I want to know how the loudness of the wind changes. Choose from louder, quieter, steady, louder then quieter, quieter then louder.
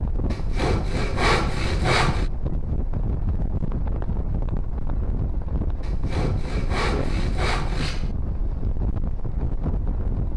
steady.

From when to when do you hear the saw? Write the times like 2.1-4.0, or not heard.
0.3-2.3, 5.8-8.2.